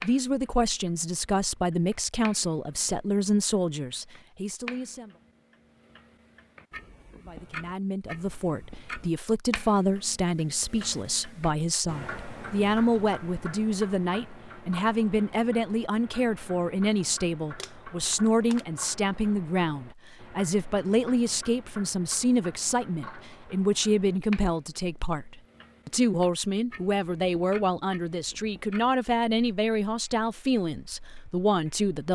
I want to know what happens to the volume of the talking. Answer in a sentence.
The volume of the talking stays about the same.